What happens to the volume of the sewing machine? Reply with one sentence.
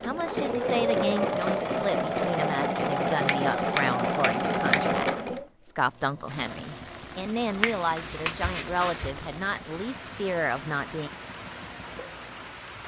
The loudness of the sewing machine goes down.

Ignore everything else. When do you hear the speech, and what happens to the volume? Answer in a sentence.
You can hear the speech from 0.0 to 11.1 s, at a steady volume.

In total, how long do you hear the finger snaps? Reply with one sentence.
The finger snaps can be heard for 3 seconds in total.